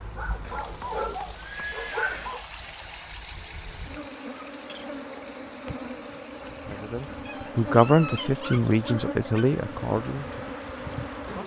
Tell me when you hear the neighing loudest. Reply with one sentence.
The loudest moment of the neighing is at 2 seconds.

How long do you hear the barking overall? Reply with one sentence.
The barking can be heard for 5 seconds in total.